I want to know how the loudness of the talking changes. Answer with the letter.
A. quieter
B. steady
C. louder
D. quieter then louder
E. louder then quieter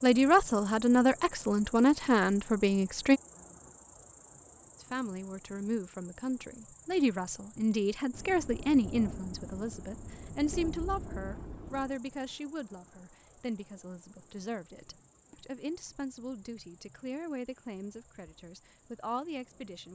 A.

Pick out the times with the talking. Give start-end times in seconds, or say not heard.
0.0-3.2, 4.8-19.9.